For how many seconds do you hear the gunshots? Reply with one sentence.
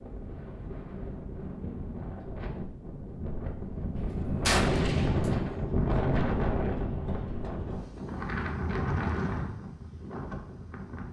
You can hear the gunshots for 2 seconds altogether.